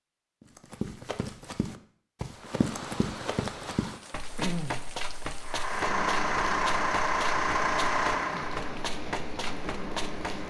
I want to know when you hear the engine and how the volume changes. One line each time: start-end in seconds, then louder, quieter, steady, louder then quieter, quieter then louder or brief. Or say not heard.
5.4-10.4 quieter.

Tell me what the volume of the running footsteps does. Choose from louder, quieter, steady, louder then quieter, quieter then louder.
steady.